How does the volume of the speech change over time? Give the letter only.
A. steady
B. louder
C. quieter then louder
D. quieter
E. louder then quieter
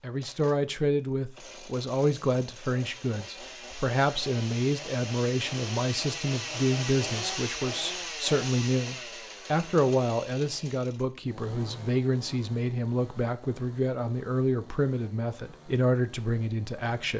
A.